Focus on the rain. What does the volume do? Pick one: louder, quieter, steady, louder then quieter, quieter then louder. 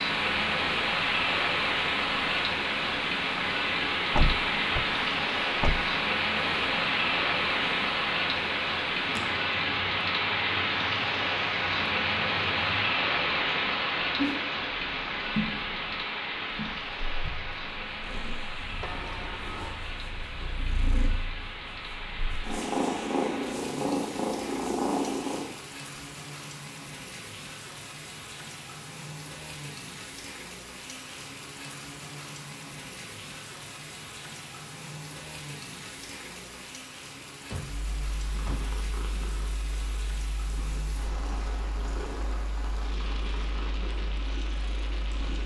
quieter.